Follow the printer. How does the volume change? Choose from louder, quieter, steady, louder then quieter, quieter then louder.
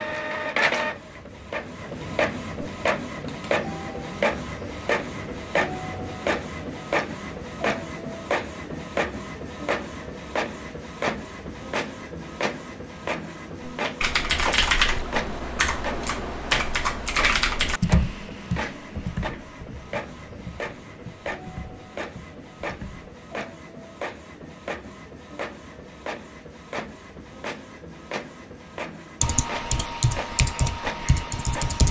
quieter.